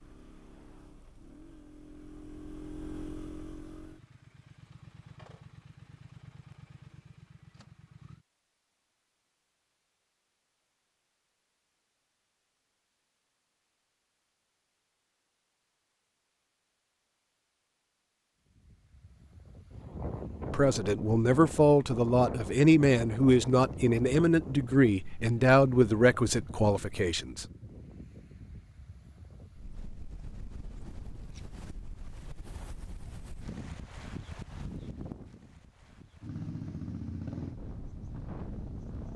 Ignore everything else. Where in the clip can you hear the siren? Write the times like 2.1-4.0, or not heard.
not heard.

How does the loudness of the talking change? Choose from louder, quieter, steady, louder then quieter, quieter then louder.
steady.